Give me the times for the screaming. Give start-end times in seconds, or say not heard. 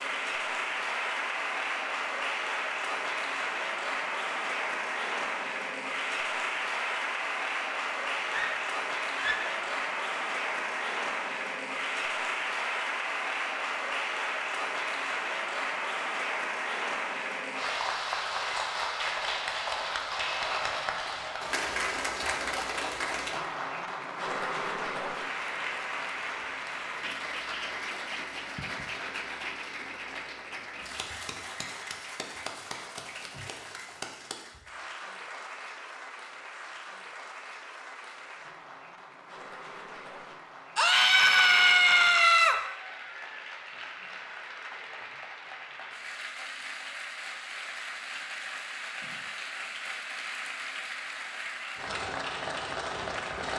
8.2-9.6, 40.8-42.6.